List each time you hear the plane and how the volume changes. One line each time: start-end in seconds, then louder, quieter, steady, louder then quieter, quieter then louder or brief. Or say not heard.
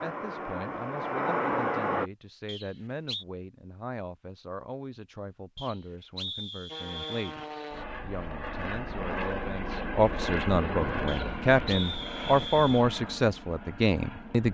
0.0-2.1 brief
6.7-14.4 louder then quieter.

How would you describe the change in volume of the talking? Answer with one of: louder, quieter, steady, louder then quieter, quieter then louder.
louder.